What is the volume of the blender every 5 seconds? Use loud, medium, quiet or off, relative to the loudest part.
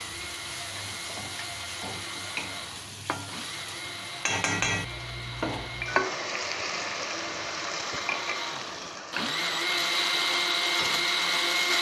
quiet, medium, loud.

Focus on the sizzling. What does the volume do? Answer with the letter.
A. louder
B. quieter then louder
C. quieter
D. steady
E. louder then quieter
E.